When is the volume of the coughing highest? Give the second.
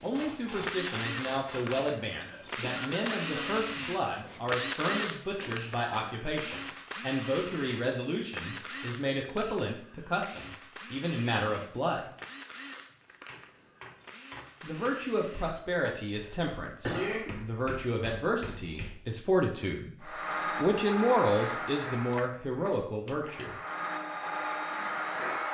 17 s.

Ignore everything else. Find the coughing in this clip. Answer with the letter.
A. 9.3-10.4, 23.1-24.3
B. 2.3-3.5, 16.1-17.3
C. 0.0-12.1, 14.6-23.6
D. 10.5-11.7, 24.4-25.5
B.